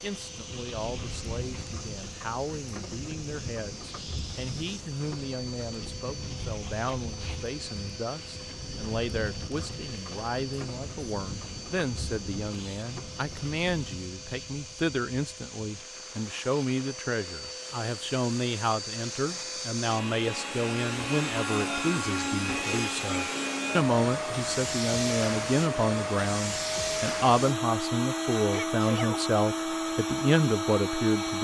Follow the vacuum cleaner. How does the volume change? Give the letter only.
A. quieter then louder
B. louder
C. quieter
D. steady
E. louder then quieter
B.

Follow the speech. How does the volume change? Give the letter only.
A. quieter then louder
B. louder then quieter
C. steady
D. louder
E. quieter
D.